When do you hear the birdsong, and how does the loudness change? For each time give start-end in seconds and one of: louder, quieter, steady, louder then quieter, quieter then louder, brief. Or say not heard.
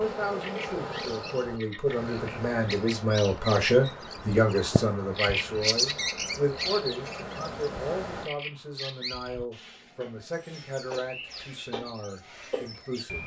0.2-13.2 louder then quieter.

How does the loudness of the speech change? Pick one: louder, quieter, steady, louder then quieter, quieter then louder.
louder then quieter.